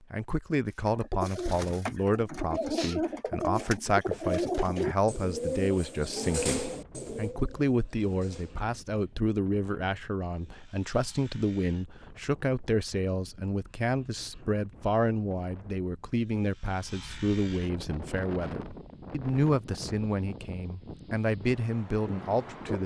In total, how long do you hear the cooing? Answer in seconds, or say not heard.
8 s.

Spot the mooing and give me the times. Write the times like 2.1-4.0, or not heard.
not heard.